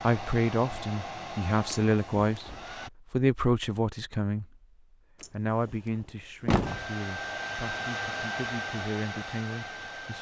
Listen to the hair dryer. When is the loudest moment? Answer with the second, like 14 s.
8 s.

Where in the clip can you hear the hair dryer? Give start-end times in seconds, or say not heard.
0.0-2.9, 6.7-10.1.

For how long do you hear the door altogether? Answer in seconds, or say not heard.
3 s.